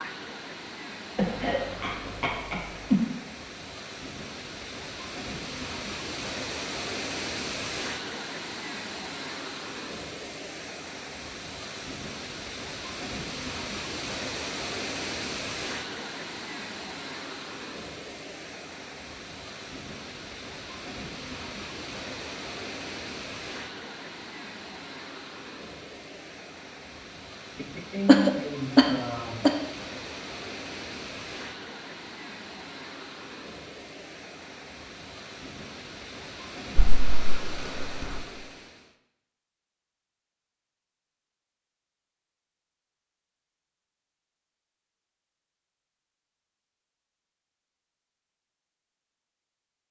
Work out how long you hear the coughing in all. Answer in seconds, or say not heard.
5 s.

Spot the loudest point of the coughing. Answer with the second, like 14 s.
28 s.